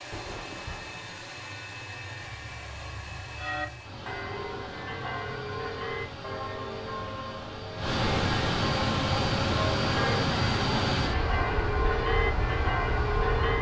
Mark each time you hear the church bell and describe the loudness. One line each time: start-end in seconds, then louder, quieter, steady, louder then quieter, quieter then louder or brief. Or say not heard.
3.4-13.5 louder.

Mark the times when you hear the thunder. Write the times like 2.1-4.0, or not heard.
0.1-1.1.